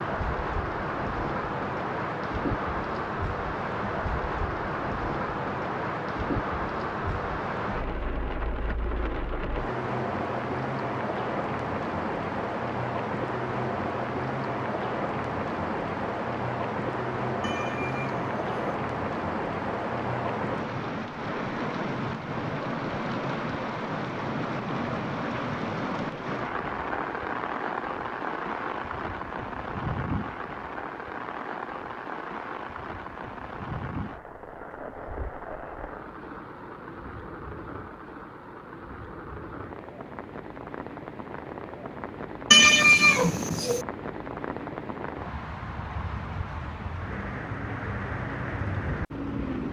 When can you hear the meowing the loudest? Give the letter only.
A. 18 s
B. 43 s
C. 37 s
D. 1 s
B.